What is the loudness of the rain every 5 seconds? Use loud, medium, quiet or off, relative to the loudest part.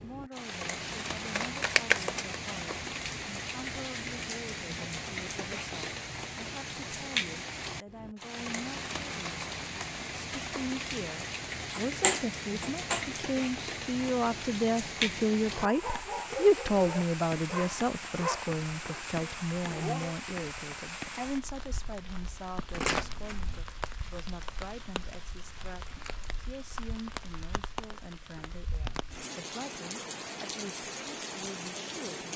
loud, loud, loud, loud, medium, medium, loud.